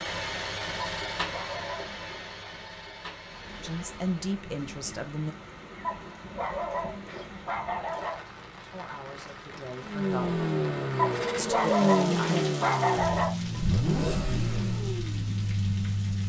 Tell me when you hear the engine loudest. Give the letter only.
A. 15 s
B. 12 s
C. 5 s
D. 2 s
B.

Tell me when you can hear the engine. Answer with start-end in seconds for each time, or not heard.
0.0-4.2, 9.8-16.2.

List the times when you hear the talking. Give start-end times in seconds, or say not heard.
3.6-5.3, 8.7-10.4, 11.3-12.4.